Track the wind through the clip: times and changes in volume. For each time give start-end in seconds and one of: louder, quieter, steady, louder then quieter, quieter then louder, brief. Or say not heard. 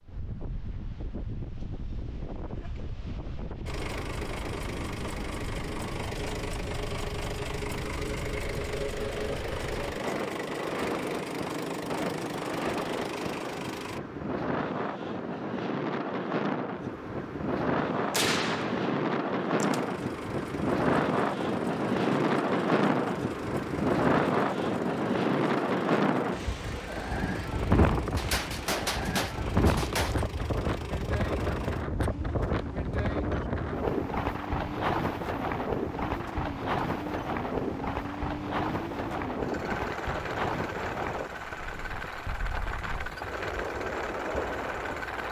0.0-45.2 louder then quieter.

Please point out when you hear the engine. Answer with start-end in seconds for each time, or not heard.
3.6-14.0, 19.6-45.2.